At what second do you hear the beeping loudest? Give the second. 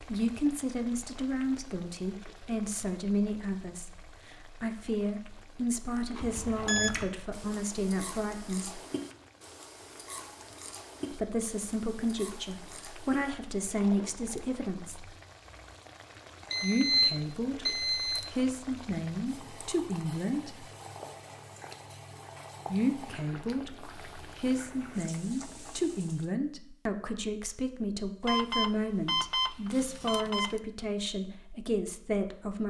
17 s.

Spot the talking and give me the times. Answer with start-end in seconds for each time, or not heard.
0.0-8.8, 11.1-15.1, 16.6-20.6, 22.7-32.6.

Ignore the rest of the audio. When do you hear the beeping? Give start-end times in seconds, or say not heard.
6.2-7.1, 16.5-18.3, 28.2-30.6.